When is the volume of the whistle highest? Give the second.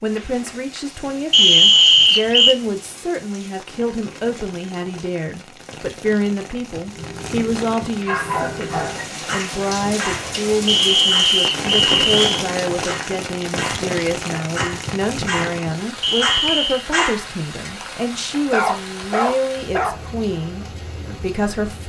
2 s.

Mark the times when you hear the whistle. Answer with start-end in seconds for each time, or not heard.
1.3-2.5, 10.7-12.4, 16.0-16.9.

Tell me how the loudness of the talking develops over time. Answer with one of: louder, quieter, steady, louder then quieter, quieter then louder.
steady.